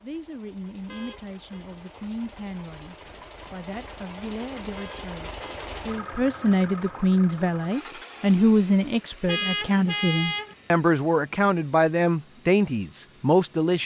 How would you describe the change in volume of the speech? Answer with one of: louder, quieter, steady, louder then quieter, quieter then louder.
louder.